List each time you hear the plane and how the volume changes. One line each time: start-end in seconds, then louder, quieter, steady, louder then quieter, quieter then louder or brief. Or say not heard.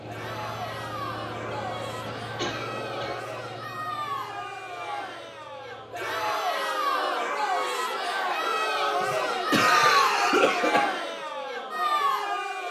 0.0-6.3 quieter.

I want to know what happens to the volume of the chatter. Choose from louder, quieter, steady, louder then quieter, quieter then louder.
louder.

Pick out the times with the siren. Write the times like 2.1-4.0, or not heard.
not heard.